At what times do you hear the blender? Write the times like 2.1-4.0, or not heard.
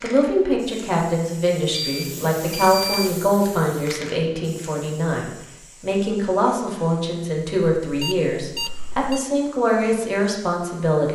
not heard.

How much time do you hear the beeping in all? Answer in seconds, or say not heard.
3 s.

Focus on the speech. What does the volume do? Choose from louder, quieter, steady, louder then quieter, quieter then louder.
steady.